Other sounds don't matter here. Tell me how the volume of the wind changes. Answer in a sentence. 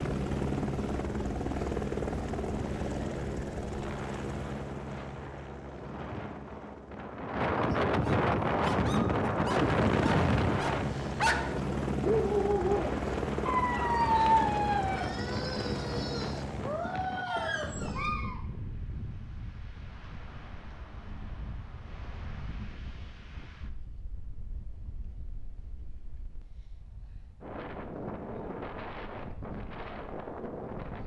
The volume of the wind goes down, then up.